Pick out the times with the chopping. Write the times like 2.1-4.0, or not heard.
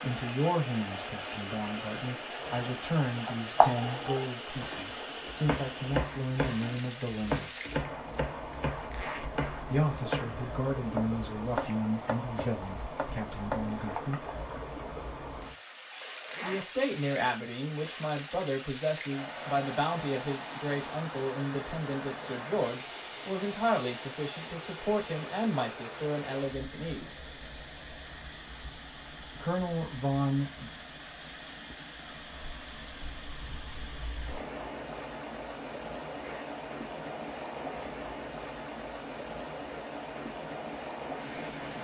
2.4-14.3.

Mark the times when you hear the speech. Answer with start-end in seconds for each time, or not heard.
0.0-7.5, 9.7-14.2, 16.4-27.2, 29.4-30.7.